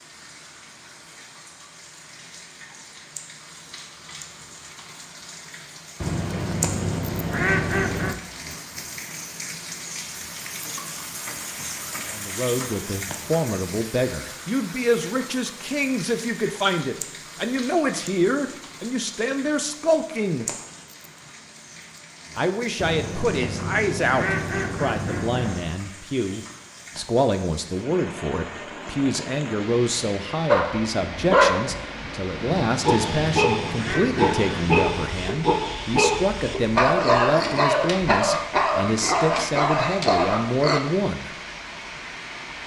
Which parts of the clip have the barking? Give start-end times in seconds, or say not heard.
30.4-40.8.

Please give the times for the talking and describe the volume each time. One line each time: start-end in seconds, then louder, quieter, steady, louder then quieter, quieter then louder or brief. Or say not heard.
12.1-20.4 steady
22.4-41.3 steady.